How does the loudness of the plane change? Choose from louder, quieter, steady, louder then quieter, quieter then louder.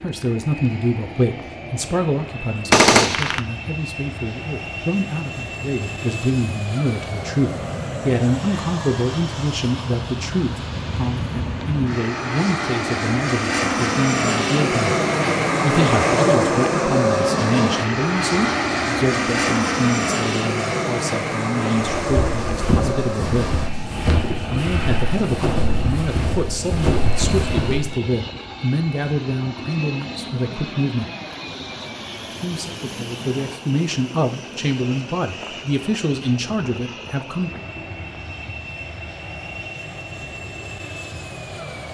louder then quieter.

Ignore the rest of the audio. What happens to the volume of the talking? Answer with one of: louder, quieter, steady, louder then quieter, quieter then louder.
steady.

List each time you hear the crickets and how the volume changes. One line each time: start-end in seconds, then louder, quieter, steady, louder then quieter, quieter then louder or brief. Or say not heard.
not heard.